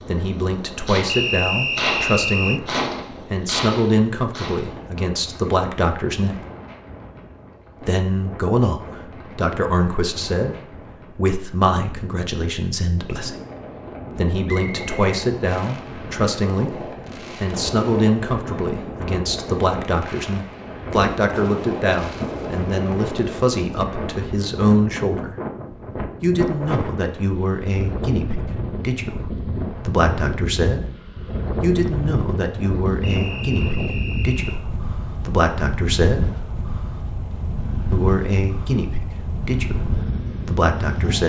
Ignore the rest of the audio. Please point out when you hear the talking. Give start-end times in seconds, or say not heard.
0.1-6.4, 7.8-13.3, 14.2-25.4, 26.2-30.9, 31.6-36.2, 37.9-41.2.